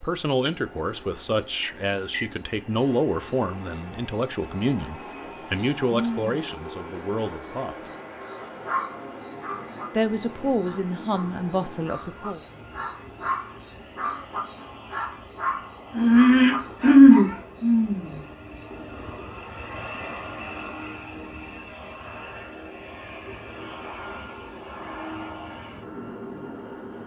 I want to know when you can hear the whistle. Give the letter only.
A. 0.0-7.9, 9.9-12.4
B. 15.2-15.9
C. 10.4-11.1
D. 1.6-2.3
D.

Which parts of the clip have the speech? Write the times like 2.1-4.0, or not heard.
0.0-7.9, 9.9-12.4.